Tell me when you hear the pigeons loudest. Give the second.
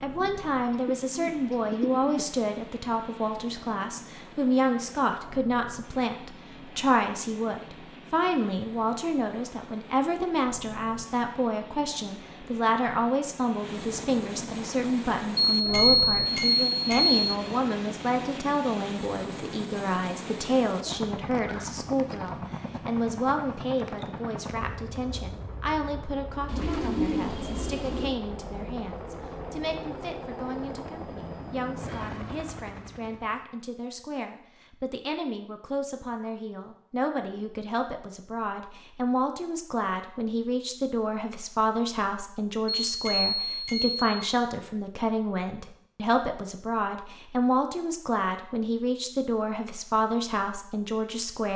27 s.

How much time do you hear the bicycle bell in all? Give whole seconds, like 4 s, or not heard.
3 s.